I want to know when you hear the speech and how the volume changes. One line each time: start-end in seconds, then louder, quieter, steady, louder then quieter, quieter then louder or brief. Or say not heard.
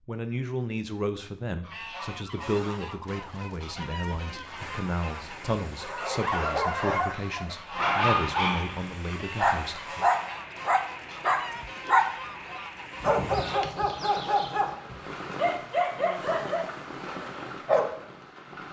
0.1-10.1 steady.